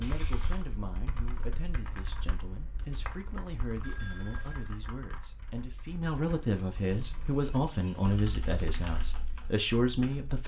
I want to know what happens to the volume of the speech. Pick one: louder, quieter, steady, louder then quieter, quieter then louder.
louder.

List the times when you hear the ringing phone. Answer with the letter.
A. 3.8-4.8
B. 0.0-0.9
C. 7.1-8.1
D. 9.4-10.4
A.